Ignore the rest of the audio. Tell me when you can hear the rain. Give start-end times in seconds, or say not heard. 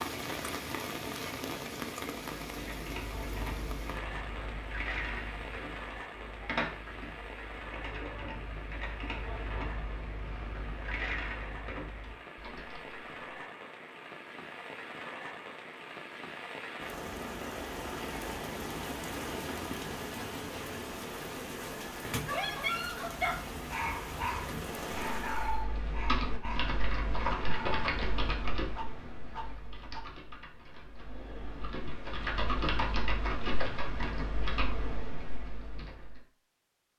0.0-25.6.